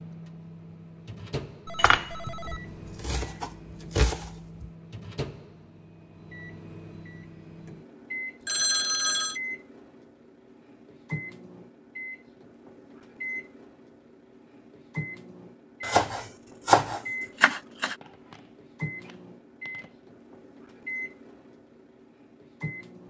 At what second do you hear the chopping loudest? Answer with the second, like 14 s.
17 s.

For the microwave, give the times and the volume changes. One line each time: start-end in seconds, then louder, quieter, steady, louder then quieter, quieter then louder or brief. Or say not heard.
0.0-23.0 steady.